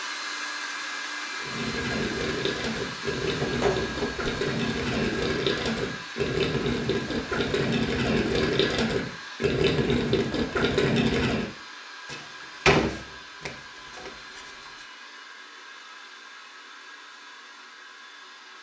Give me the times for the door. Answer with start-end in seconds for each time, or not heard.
3.4-4.3, 12.1-14.7.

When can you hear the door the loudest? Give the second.
13 s.